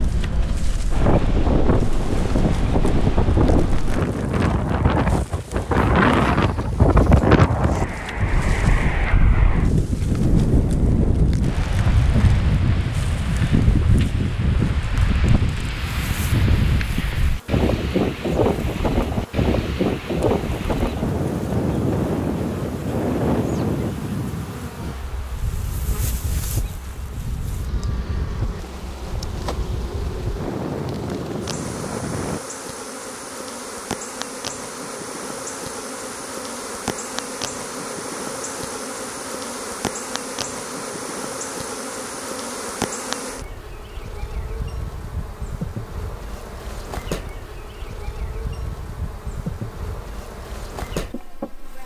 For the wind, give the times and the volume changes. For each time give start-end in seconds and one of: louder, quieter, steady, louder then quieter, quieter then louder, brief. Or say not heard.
0.0-32.4 quieter.